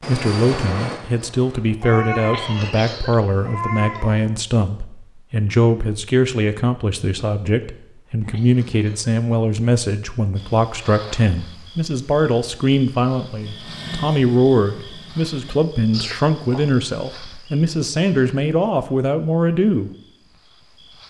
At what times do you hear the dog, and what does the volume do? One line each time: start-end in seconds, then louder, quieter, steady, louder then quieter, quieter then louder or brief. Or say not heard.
not heard.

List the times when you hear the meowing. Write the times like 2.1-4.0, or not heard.
1.8-4.3.